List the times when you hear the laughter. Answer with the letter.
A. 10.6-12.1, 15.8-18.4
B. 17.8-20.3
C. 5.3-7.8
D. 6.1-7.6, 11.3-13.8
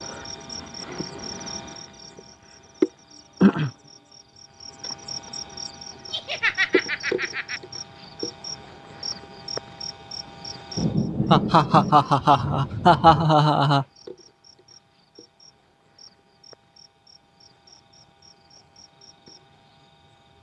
D.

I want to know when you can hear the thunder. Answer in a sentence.
You can hear the thunder from 10.8 to 13.3 s.